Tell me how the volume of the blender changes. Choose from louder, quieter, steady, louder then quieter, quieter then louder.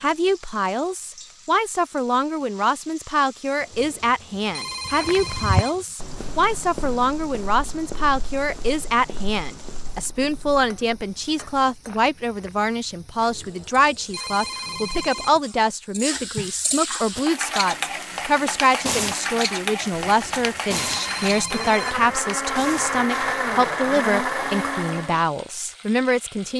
louder.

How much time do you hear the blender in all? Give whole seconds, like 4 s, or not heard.
8 s.